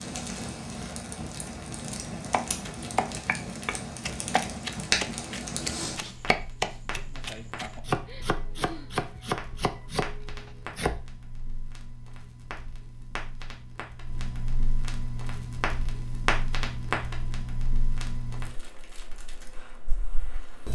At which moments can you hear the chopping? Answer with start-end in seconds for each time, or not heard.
2.3-11.0.